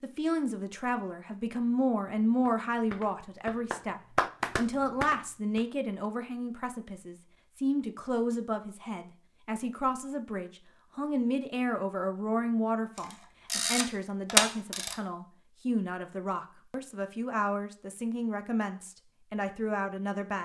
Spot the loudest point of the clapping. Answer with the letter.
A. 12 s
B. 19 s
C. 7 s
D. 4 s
D.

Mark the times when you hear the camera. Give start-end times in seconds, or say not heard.
12.9-14.9.